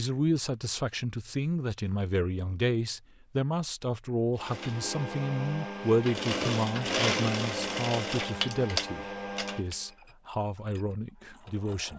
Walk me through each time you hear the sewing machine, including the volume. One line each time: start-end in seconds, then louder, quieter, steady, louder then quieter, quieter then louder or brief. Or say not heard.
4.3-11.9 louder then quieter.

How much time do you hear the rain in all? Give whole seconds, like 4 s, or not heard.
not heard.